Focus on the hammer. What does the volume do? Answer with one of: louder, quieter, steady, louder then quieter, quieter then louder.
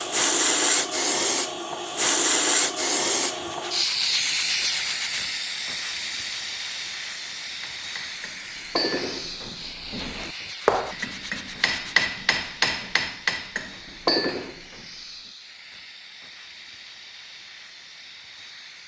quieter then louder.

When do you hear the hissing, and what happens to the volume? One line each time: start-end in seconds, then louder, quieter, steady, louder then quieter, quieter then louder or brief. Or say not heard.
0.0-18.8 quieter.